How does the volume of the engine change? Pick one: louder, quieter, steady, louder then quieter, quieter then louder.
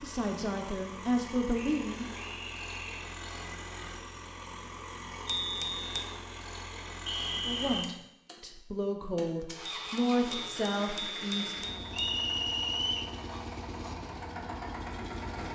steady.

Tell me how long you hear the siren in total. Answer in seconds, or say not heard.
not heard.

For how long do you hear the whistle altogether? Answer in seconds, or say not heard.
4 s.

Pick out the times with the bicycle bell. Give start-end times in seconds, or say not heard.
5.2-6.0, 9.7-12.2.